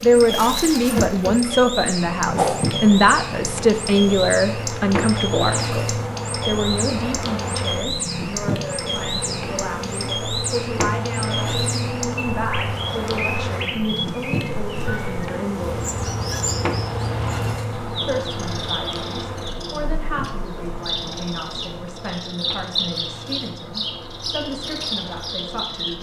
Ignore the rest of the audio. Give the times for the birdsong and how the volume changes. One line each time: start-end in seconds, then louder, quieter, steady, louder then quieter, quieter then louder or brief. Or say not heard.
0.0-25.9 steady.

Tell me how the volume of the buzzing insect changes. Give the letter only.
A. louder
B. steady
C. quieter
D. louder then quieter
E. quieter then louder
C.